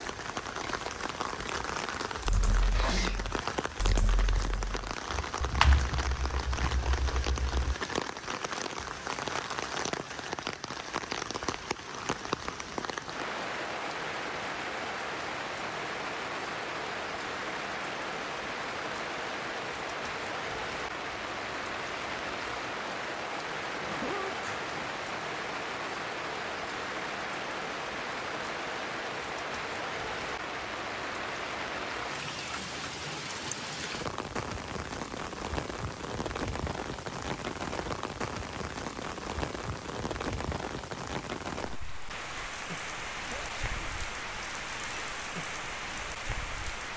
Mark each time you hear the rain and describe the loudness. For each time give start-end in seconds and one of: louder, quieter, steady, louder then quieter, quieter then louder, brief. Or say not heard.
0.0-46.9 steady.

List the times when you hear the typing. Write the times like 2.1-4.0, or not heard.
2.2-7.8.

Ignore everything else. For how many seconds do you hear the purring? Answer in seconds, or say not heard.
not heard.